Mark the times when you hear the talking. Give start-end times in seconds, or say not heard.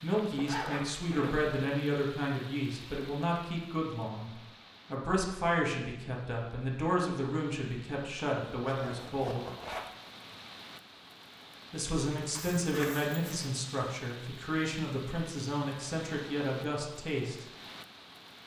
0.0-4.3, 4.9-9.4, 11.7-17.4.